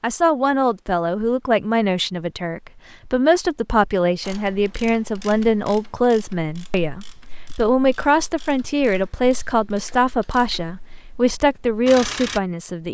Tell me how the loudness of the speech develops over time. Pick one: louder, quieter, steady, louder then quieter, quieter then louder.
steady.